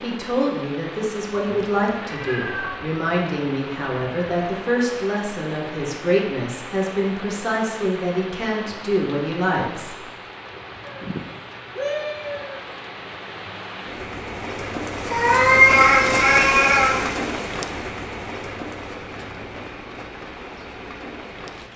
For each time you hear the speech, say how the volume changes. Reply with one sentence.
The speech can be heard from 0.0 to 9.9 s, at a steady volume.